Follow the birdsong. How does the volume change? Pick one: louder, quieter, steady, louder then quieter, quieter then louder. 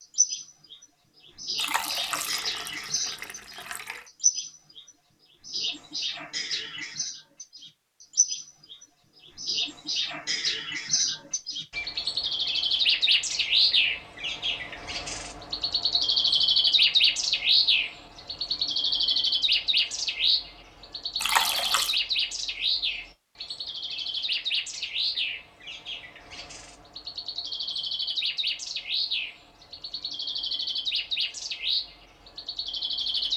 louder then quieter.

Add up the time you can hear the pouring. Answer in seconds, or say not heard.
3 s.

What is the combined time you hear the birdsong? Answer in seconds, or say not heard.
33 s.